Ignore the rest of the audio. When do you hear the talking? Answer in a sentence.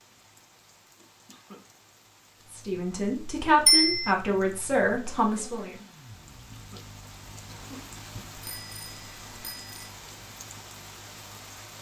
The talking can be heard from 2.5 to 5.8 s.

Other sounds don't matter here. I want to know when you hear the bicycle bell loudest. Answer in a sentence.
The loudest moment of the bicycle bell is at 4 seconds.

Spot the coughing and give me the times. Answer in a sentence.
The coughing can be heard from 0.9 to 2.0 s, from 6.2 to 6.8 s and from 7.5 to 8.2 s.